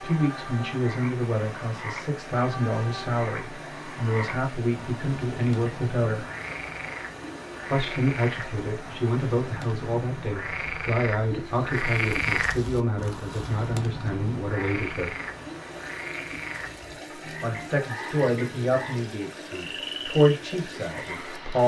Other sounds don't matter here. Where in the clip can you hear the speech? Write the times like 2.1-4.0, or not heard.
0.0-6.2, 7.7-15.2, 17.4-21.6.